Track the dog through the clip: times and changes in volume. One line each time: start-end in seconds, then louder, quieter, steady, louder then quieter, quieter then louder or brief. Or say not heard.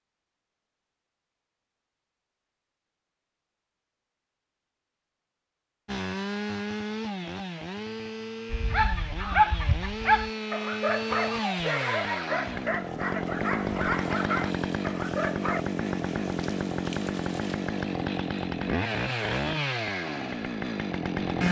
8.5-15.7 quieter.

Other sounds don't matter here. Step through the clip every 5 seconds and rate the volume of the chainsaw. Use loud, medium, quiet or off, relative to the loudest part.
off, medium, loud, loud, loud.